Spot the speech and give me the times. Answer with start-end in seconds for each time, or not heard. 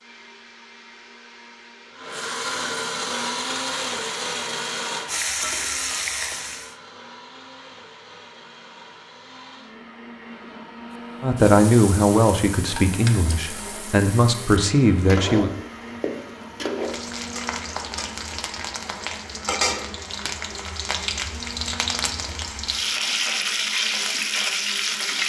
11.2-15.5.